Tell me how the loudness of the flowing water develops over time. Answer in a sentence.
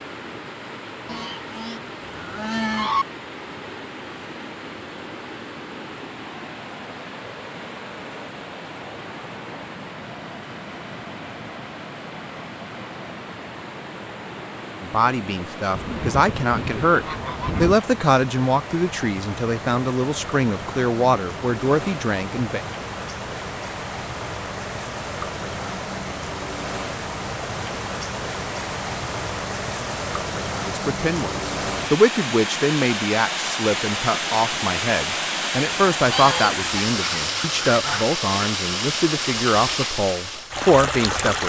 The loudness of the flowing water goes up.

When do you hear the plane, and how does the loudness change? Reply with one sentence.
The plane can't be heard in this clip.